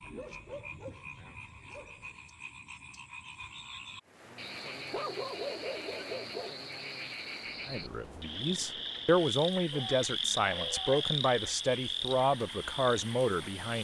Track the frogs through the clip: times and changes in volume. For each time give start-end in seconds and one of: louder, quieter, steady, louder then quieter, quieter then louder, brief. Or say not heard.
0.0-13.7 louder.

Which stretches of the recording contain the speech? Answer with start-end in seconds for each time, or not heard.
7.7-13.7.